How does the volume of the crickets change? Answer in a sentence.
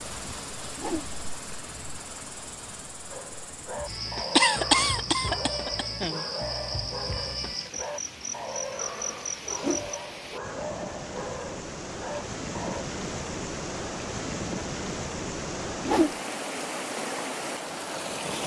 The volume of the crickets goes up.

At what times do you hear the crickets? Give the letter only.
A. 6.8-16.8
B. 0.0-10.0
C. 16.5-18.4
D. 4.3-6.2
B.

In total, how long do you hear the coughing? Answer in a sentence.
The coughing can be heard for 2 seconds in total.